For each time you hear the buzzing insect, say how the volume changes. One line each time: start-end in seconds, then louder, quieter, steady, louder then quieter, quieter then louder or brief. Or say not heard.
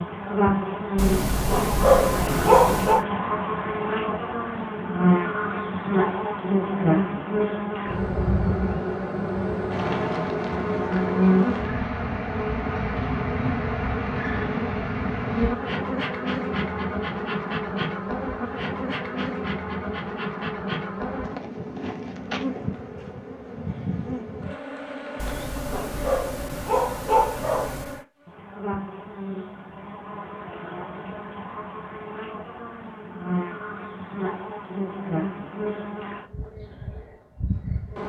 0.0-38.0 quieter.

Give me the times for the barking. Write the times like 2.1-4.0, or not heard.
0.9-3.0, 25.1-28.0.